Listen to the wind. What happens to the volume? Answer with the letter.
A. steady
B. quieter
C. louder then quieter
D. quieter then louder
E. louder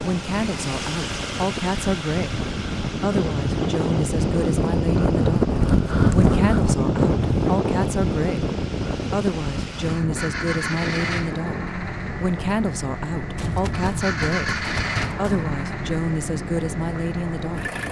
C.